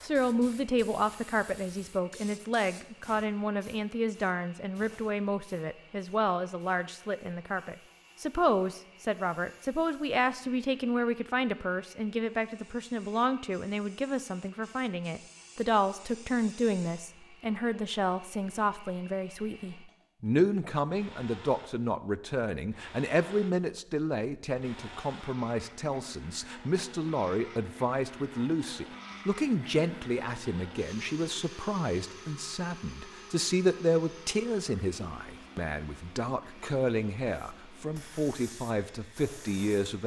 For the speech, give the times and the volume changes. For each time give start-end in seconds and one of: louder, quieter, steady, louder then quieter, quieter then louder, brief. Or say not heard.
0.0-40.0 steady.